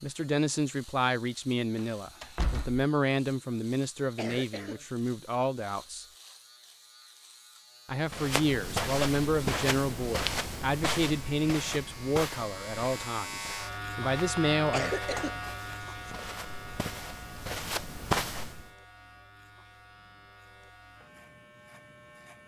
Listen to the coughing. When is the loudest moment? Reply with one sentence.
The volume of the coughing peaks at 15 seconds.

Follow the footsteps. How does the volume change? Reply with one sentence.
The loudness of the footsteps goes down, then up.